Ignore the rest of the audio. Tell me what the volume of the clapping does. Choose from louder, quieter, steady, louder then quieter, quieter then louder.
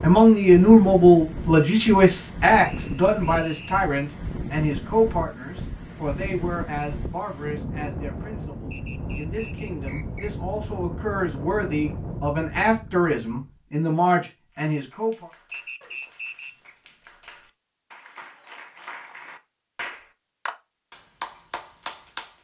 louder.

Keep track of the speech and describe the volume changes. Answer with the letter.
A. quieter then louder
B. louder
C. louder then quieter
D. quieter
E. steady
A.